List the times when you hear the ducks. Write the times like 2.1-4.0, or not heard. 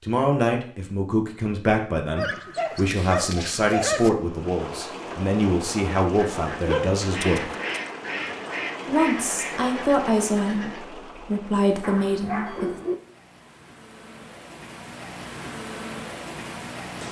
6.2-10.9.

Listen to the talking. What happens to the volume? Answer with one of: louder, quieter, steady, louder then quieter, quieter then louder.
steady.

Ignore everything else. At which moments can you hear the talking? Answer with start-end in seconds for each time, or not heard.
0.0-7.5, 8.8-12.8.